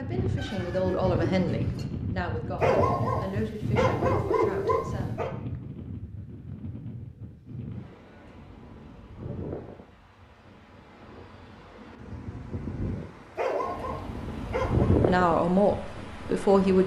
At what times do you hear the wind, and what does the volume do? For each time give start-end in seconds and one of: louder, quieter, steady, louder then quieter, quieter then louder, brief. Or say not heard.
0.0-16.8 quieter then louder.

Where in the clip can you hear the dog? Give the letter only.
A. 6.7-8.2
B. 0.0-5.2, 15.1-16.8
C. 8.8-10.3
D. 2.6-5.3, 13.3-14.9
D.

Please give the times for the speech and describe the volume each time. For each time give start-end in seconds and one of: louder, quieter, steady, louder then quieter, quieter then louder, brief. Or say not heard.
0.0-5.2 quieter
15.1-16.8 brief.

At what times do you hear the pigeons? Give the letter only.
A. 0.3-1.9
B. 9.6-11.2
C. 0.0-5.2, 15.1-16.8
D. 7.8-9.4
A.